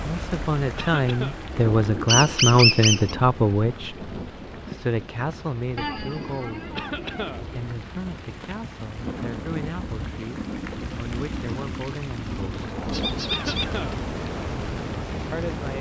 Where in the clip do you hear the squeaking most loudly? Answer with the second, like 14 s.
3 s.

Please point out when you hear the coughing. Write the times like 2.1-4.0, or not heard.
0.8-1.4, 6.8-7.5, 13.3-14.0.